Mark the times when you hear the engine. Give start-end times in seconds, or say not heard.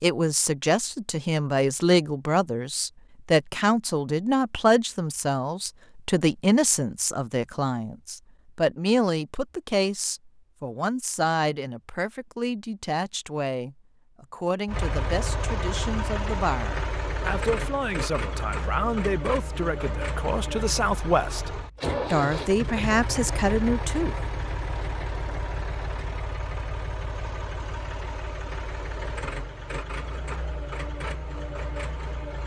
14.7-32.4.